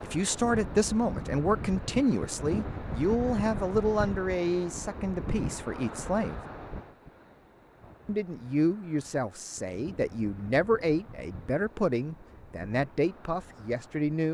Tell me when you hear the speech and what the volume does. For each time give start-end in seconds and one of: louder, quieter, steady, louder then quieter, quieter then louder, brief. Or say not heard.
0.0-6.4 quieter
8.1-14.2 steady.